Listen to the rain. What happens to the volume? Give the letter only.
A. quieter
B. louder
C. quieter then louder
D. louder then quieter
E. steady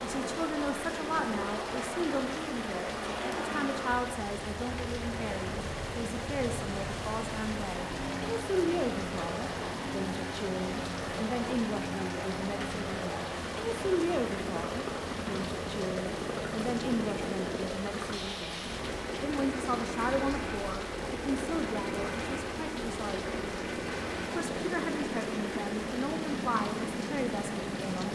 E.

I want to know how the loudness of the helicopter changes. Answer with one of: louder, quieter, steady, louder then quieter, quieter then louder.
steady.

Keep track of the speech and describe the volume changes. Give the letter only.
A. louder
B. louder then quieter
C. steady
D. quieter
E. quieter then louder
C.